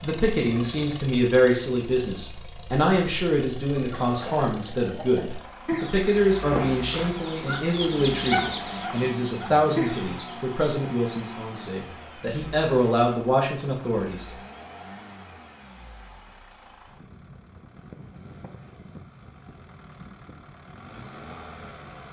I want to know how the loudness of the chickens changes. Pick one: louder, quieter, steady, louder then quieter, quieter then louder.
louder.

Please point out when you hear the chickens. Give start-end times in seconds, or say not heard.
3.8-10.4.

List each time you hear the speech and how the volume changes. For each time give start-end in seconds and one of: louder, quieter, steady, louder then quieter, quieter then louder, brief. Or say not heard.
0.0-14.3 steady.